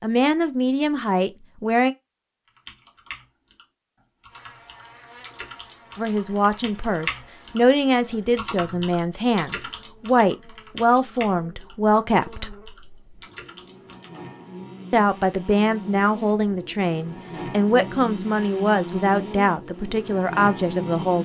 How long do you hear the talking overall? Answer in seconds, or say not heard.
15 s.